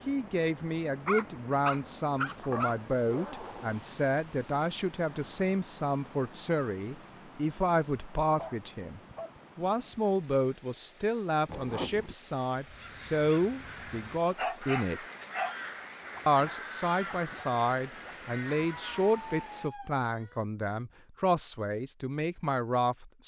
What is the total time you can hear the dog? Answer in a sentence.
You can hear the dog for 6 seconds altogether.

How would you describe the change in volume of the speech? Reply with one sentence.
The volume of the speech stays about the same.